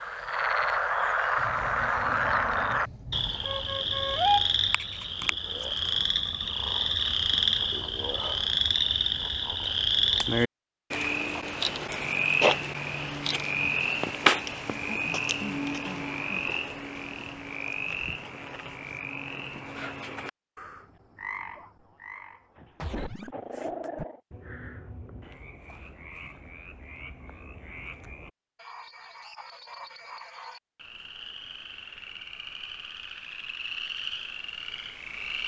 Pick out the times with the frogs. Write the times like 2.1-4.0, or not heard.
0.0-35.4.